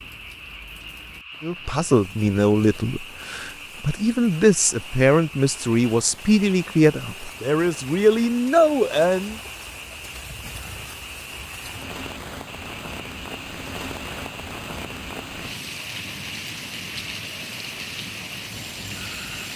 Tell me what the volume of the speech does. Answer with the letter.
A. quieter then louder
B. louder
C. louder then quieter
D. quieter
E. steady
E.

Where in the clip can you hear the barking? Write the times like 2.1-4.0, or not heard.
not heard.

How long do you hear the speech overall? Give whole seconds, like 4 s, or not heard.
8 s.